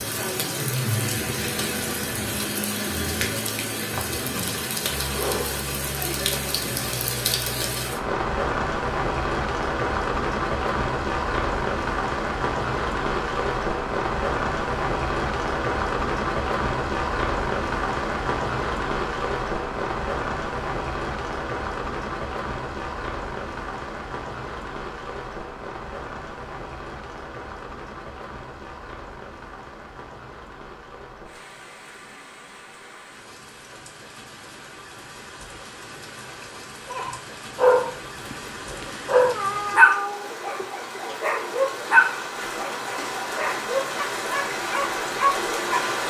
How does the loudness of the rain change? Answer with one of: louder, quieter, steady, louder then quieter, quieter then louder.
quieter then louder.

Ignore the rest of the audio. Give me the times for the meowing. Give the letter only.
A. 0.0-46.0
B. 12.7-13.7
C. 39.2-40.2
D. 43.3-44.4
C.